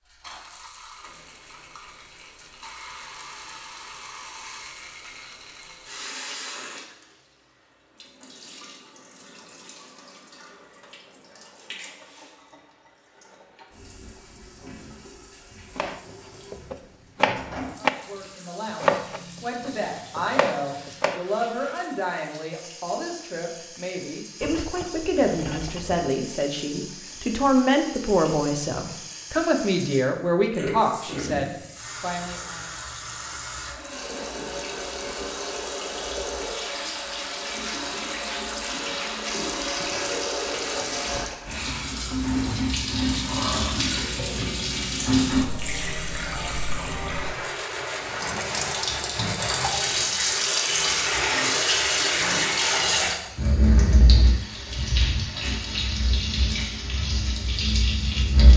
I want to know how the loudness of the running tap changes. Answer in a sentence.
The loudness of the running tap goes up.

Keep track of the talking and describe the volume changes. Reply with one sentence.
The loudness of the talking goes up.